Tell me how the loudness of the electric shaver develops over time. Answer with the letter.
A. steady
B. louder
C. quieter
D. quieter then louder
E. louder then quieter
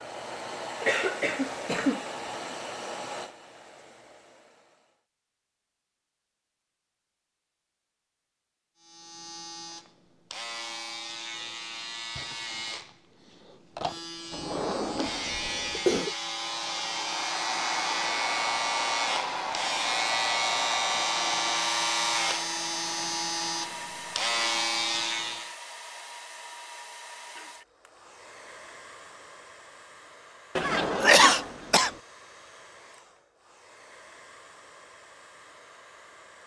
B.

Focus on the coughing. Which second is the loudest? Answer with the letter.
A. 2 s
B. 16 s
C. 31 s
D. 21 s
C.